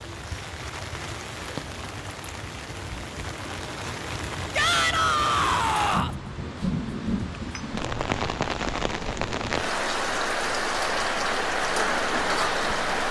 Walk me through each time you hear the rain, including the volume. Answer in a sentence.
The rain can be heard from 0.0 to 13.0 s, getting louder.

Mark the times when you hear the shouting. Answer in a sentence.
You can hear the shouting from 4.5 to 6.2 s.